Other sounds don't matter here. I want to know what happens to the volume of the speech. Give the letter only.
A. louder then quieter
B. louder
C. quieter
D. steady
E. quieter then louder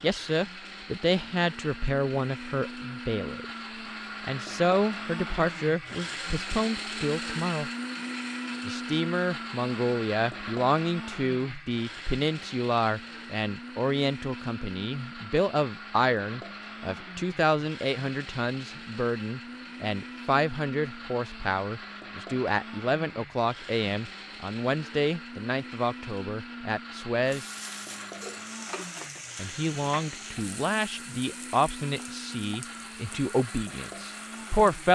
D.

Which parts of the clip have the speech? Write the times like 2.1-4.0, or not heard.
0.0-3.5, 4.2-7.7, 8.7-27.4, 29.4-34.9.